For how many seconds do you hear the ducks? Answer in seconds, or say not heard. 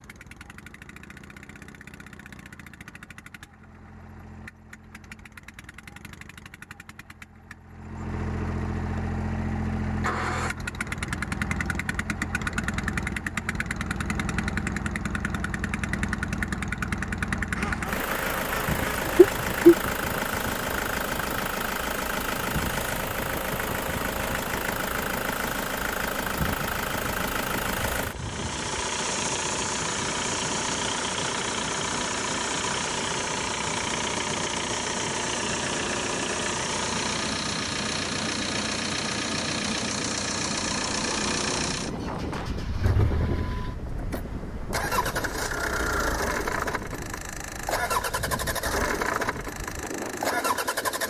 2 s.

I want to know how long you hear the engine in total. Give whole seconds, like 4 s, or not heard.
51 s.